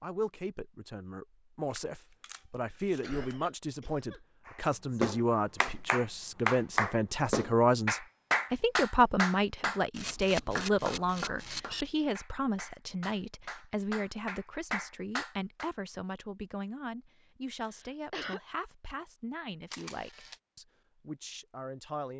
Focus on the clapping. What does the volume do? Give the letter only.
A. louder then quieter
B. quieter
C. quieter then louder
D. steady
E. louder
C.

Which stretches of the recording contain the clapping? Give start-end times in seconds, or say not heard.
4.5-15.7.